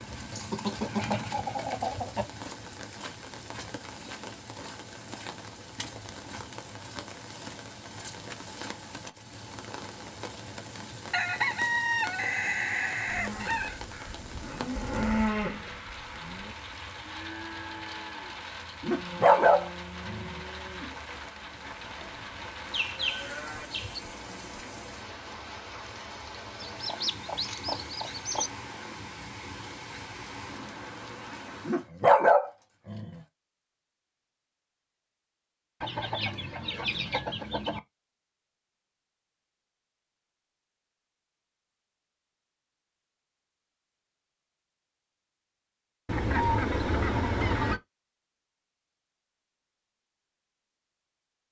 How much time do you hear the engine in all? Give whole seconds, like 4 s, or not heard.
2 s.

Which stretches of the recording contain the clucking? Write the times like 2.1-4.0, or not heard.
0.3-2.3, 11.1-13.8, 22.0-24.0, 26.6-28.5, 35.8-37.8, 46.0-47.8.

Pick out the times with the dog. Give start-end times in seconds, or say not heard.
18.8-20.3, 31.6-33.1.